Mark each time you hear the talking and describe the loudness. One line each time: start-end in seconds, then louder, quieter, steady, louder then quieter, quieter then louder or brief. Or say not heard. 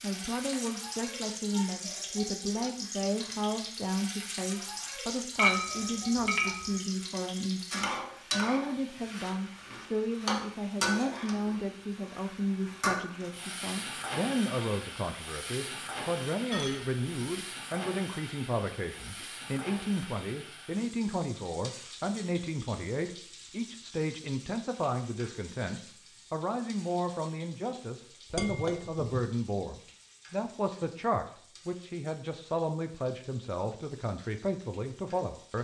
0.0-35.5 steady.